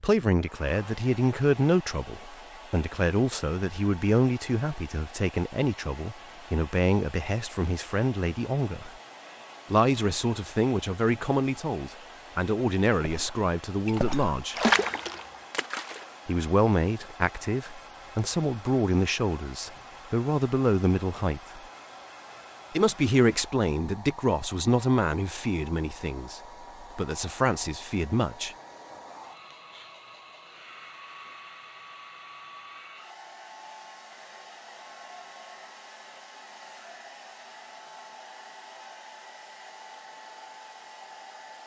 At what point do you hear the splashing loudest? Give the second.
15 s.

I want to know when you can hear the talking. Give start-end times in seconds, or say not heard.
0.0-8.9, 9.7-14.6, 16.2-21.6, 22.7-28.6.